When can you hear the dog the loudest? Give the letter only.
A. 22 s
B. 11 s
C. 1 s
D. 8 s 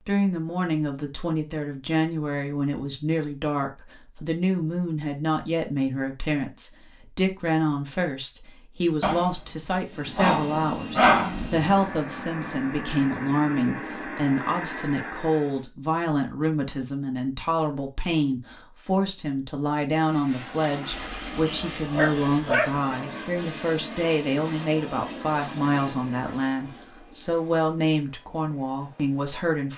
B.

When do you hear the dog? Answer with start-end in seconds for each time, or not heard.
9.0-11.7, 20.9-22.8.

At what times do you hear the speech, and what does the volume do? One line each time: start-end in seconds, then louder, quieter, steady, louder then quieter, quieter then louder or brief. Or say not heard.
0.1-29.7 steady.